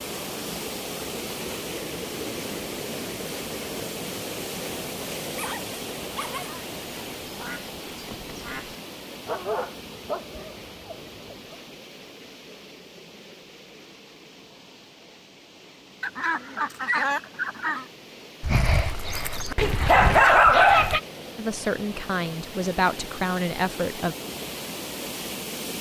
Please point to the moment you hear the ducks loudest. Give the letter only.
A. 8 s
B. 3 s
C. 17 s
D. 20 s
C.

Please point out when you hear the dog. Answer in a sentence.
You can hear the dog from 5.3 to 6.7 s, from 9.2 to 11.6 s and from 18.4 to 21.0 s.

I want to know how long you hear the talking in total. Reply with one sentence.
You can hear the talking for 3 seconds altogether.